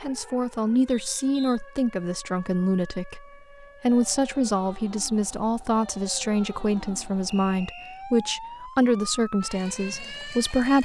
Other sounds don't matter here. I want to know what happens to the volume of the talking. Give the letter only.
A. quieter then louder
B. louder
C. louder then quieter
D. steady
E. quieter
D.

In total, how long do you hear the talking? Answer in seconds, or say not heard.
11 s.